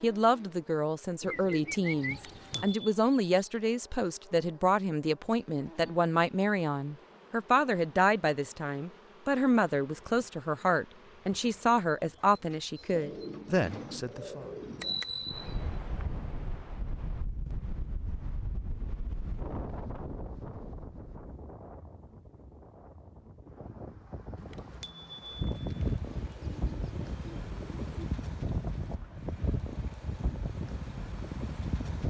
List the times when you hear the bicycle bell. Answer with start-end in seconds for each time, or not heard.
2.1-2.9, 14.6-16.1, 24.4-26.0.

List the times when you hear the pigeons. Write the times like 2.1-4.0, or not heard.
1.2-2.8, 12.9-15.0, 26.1-28.1.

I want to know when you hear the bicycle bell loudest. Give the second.
15 s.